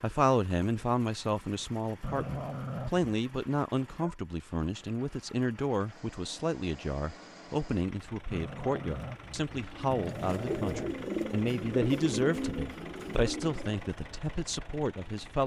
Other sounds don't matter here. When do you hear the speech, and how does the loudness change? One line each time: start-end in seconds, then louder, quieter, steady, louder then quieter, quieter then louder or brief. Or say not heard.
0.0-15.4 steady.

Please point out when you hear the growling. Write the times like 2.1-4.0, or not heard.
2.0-3.1, 8.3-10.9.